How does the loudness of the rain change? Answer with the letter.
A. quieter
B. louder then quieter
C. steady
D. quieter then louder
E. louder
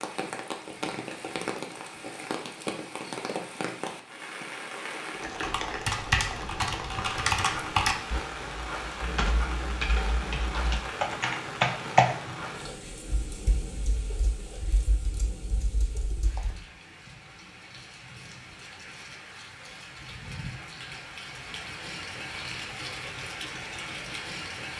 D.